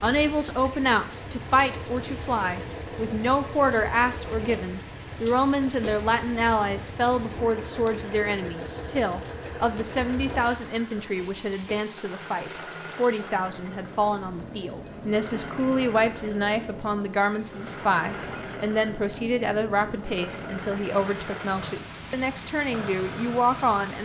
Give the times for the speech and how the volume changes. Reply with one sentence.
The speech can be heard from 0.0 to 24.0 s, at a steady volume.